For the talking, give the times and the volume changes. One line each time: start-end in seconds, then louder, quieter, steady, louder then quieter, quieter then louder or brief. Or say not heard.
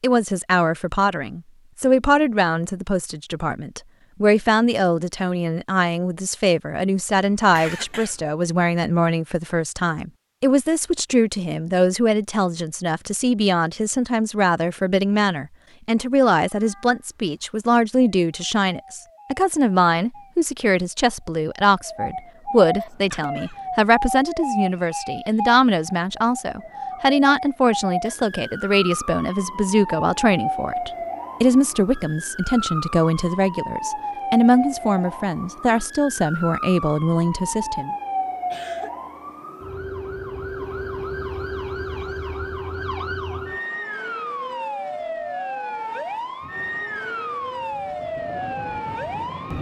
0.0-37.9 steady.